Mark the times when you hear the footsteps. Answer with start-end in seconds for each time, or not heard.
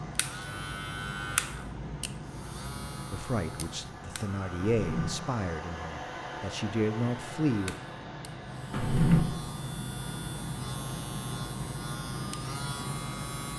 not heard.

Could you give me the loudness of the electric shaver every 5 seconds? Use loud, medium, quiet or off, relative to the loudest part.
loud, medium, loud.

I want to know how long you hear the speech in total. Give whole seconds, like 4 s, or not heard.
5 s.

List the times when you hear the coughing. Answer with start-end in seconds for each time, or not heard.
not heard.